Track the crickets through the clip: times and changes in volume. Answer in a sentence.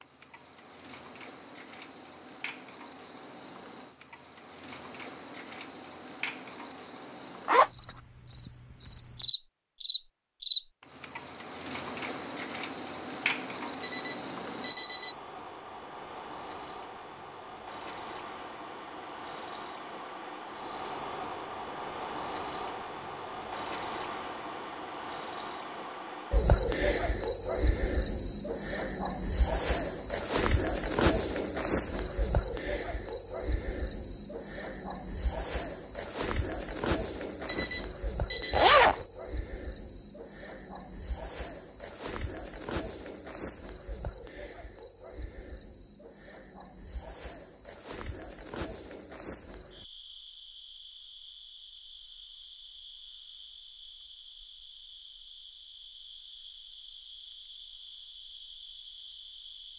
You can hear the crickets from 0.0 to 59.7 s, getting louder then quieter.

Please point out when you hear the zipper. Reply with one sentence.
You can hear the zipper from 7.5 to 8.0 s and from 38.5 to 39.0 s.